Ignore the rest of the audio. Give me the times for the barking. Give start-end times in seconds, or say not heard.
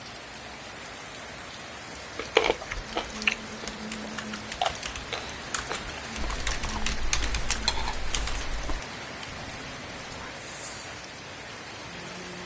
not heard.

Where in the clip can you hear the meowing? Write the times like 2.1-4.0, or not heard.
9.3-10.3.